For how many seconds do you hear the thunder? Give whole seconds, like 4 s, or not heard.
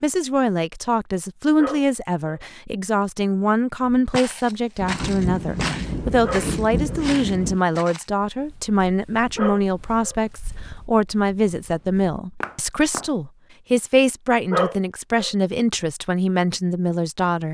3 s.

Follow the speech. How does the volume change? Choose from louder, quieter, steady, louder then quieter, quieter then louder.
steady.